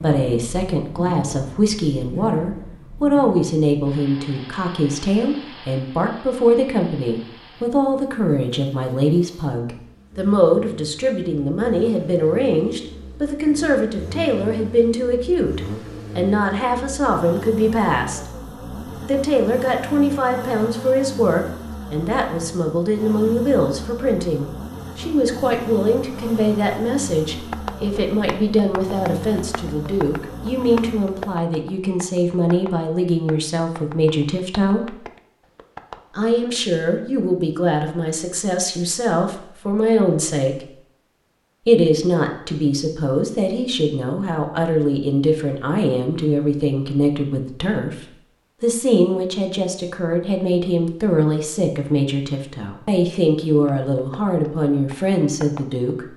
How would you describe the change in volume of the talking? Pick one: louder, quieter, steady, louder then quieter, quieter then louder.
steady.